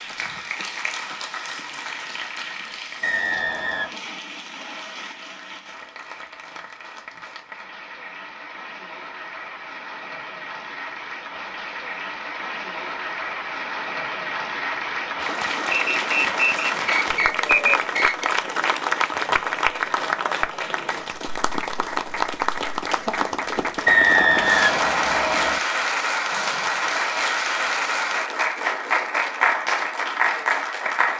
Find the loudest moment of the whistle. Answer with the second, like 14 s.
24 s.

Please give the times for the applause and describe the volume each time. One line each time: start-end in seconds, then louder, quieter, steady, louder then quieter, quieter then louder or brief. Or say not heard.
0.0-31.1 louder.